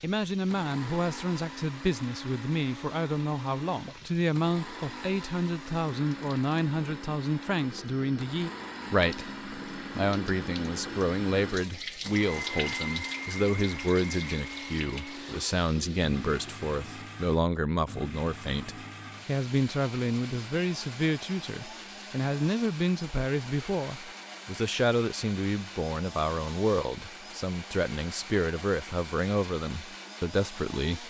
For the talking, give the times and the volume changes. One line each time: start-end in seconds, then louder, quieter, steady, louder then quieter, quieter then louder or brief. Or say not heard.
0.0-31.0 steady.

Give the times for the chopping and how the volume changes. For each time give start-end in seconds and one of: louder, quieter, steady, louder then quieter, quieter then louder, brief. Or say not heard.
not heard.